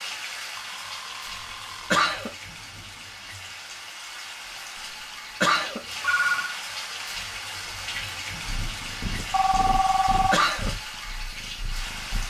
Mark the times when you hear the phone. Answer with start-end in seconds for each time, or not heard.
0.6-1.9, 5.5-6.5, 9.3-10.3.